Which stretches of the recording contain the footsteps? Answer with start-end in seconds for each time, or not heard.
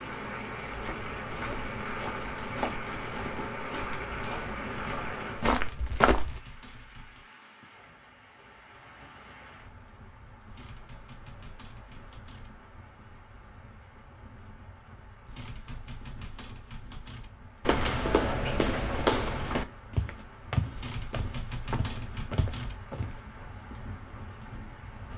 0.7-6.4, 17.6-23.2.